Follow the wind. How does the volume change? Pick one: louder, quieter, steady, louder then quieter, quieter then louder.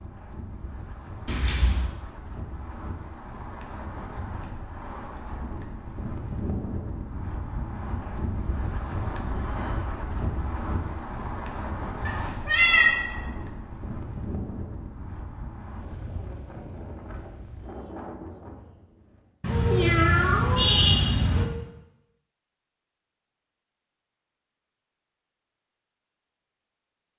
louder then quieter.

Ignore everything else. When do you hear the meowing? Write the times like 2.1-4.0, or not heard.
1.2-1.8, 12.1-12.9, 19.4-21.4.